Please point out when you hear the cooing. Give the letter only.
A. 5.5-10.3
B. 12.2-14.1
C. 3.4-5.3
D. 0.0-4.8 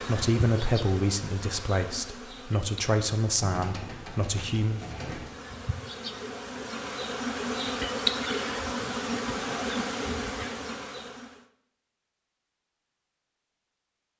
C.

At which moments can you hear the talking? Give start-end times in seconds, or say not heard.
0.0-4.8.